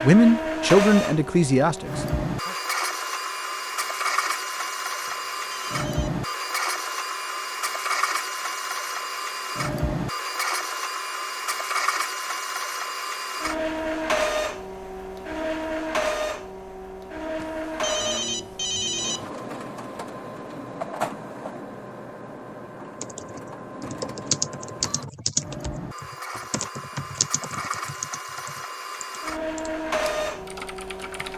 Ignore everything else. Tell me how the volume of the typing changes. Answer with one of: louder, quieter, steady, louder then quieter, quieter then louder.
quieter.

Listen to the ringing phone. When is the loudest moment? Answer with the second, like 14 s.
19 s.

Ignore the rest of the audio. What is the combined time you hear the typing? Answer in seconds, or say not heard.
8 s.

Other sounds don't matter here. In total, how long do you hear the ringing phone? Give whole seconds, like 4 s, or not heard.
3 s.